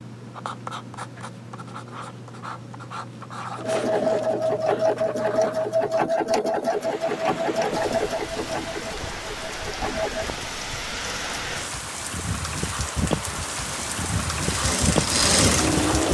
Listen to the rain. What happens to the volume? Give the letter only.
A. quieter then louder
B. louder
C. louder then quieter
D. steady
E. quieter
B.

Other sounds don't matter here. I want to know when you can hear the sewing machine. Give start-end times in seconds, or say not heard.
3.5-10.3, 13.6-16.0.